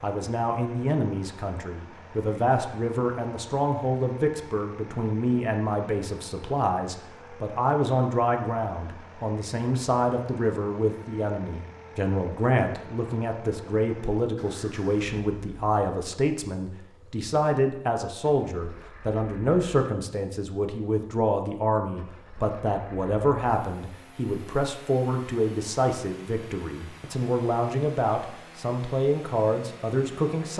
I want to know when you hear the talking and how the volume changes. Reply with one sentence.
You can hear the talking from 0.0 to 30.5 s, at a steady volume.